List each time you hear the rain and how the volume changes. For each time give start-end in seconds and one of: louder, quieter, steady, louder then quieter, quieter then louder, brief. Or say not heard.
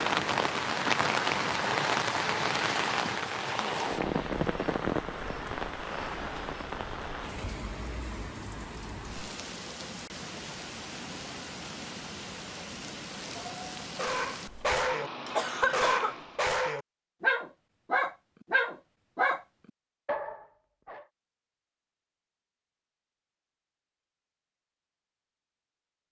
0.0-16.5 quieter.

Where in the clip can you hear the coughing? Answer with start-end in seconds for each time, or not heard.
15.3-16.1.